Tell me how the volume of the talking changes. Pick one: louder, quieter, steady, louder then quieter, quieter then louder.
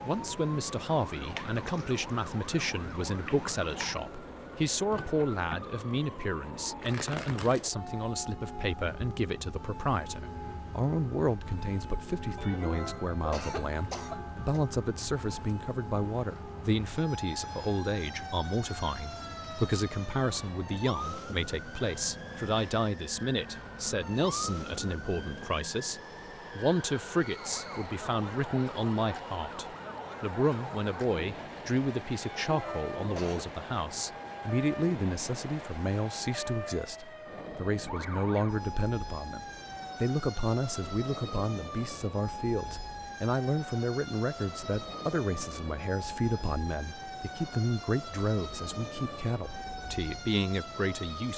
steady.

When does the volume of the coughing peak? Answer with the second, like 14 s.
13 s.